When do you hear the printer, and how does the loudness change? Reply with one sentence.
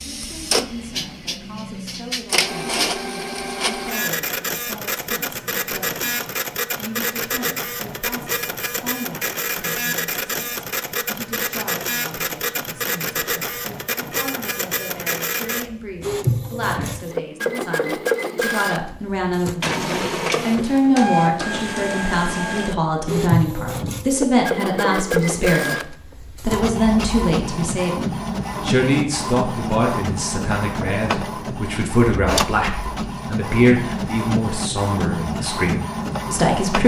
The printer can be heard from 0.0 to 36.8 s, at a steady volume.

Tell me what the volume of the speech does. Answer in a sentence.
The loudness of the speech goes up.